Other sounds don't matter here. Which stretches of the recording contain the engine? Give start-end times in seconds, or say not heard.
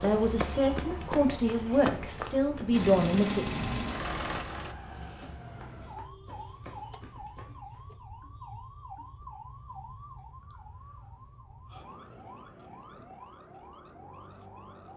2.7-4.8.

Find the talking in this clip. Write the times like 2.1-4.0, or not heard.
0.0-3.5.